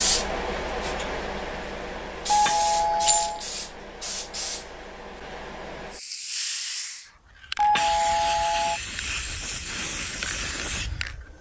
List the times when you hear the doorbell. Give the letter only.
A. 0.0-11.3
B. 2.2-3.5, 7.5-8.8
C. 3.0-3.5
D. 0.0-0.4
B.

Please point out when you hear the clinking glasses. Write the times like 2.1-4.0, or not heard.
3.0-3.5.